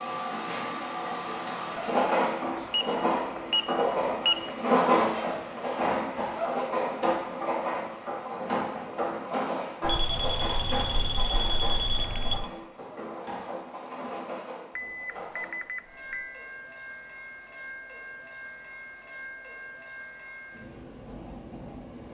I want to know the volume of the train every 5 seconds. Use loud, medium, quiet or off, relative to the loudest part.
loud, loud, medium, quiet, quiet.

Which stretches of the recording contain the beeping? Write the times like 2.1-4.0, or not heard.
2.5-4.5, 9.8-12.5, 14.8-16.4.